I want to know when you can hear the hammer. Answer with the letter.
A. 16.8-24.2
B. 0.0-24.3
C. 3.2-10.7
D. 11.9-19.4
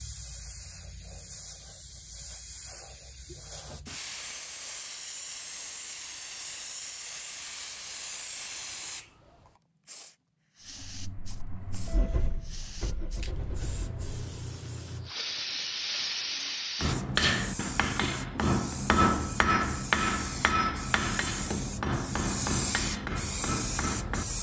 A.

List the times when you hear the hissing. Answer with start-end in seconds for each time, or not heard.
0.0-24.3.